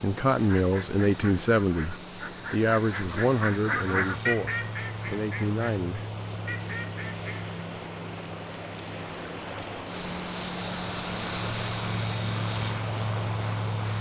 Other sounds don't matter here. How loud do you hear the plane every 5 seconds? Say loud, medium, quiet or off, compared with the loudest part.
medium, medium, loud.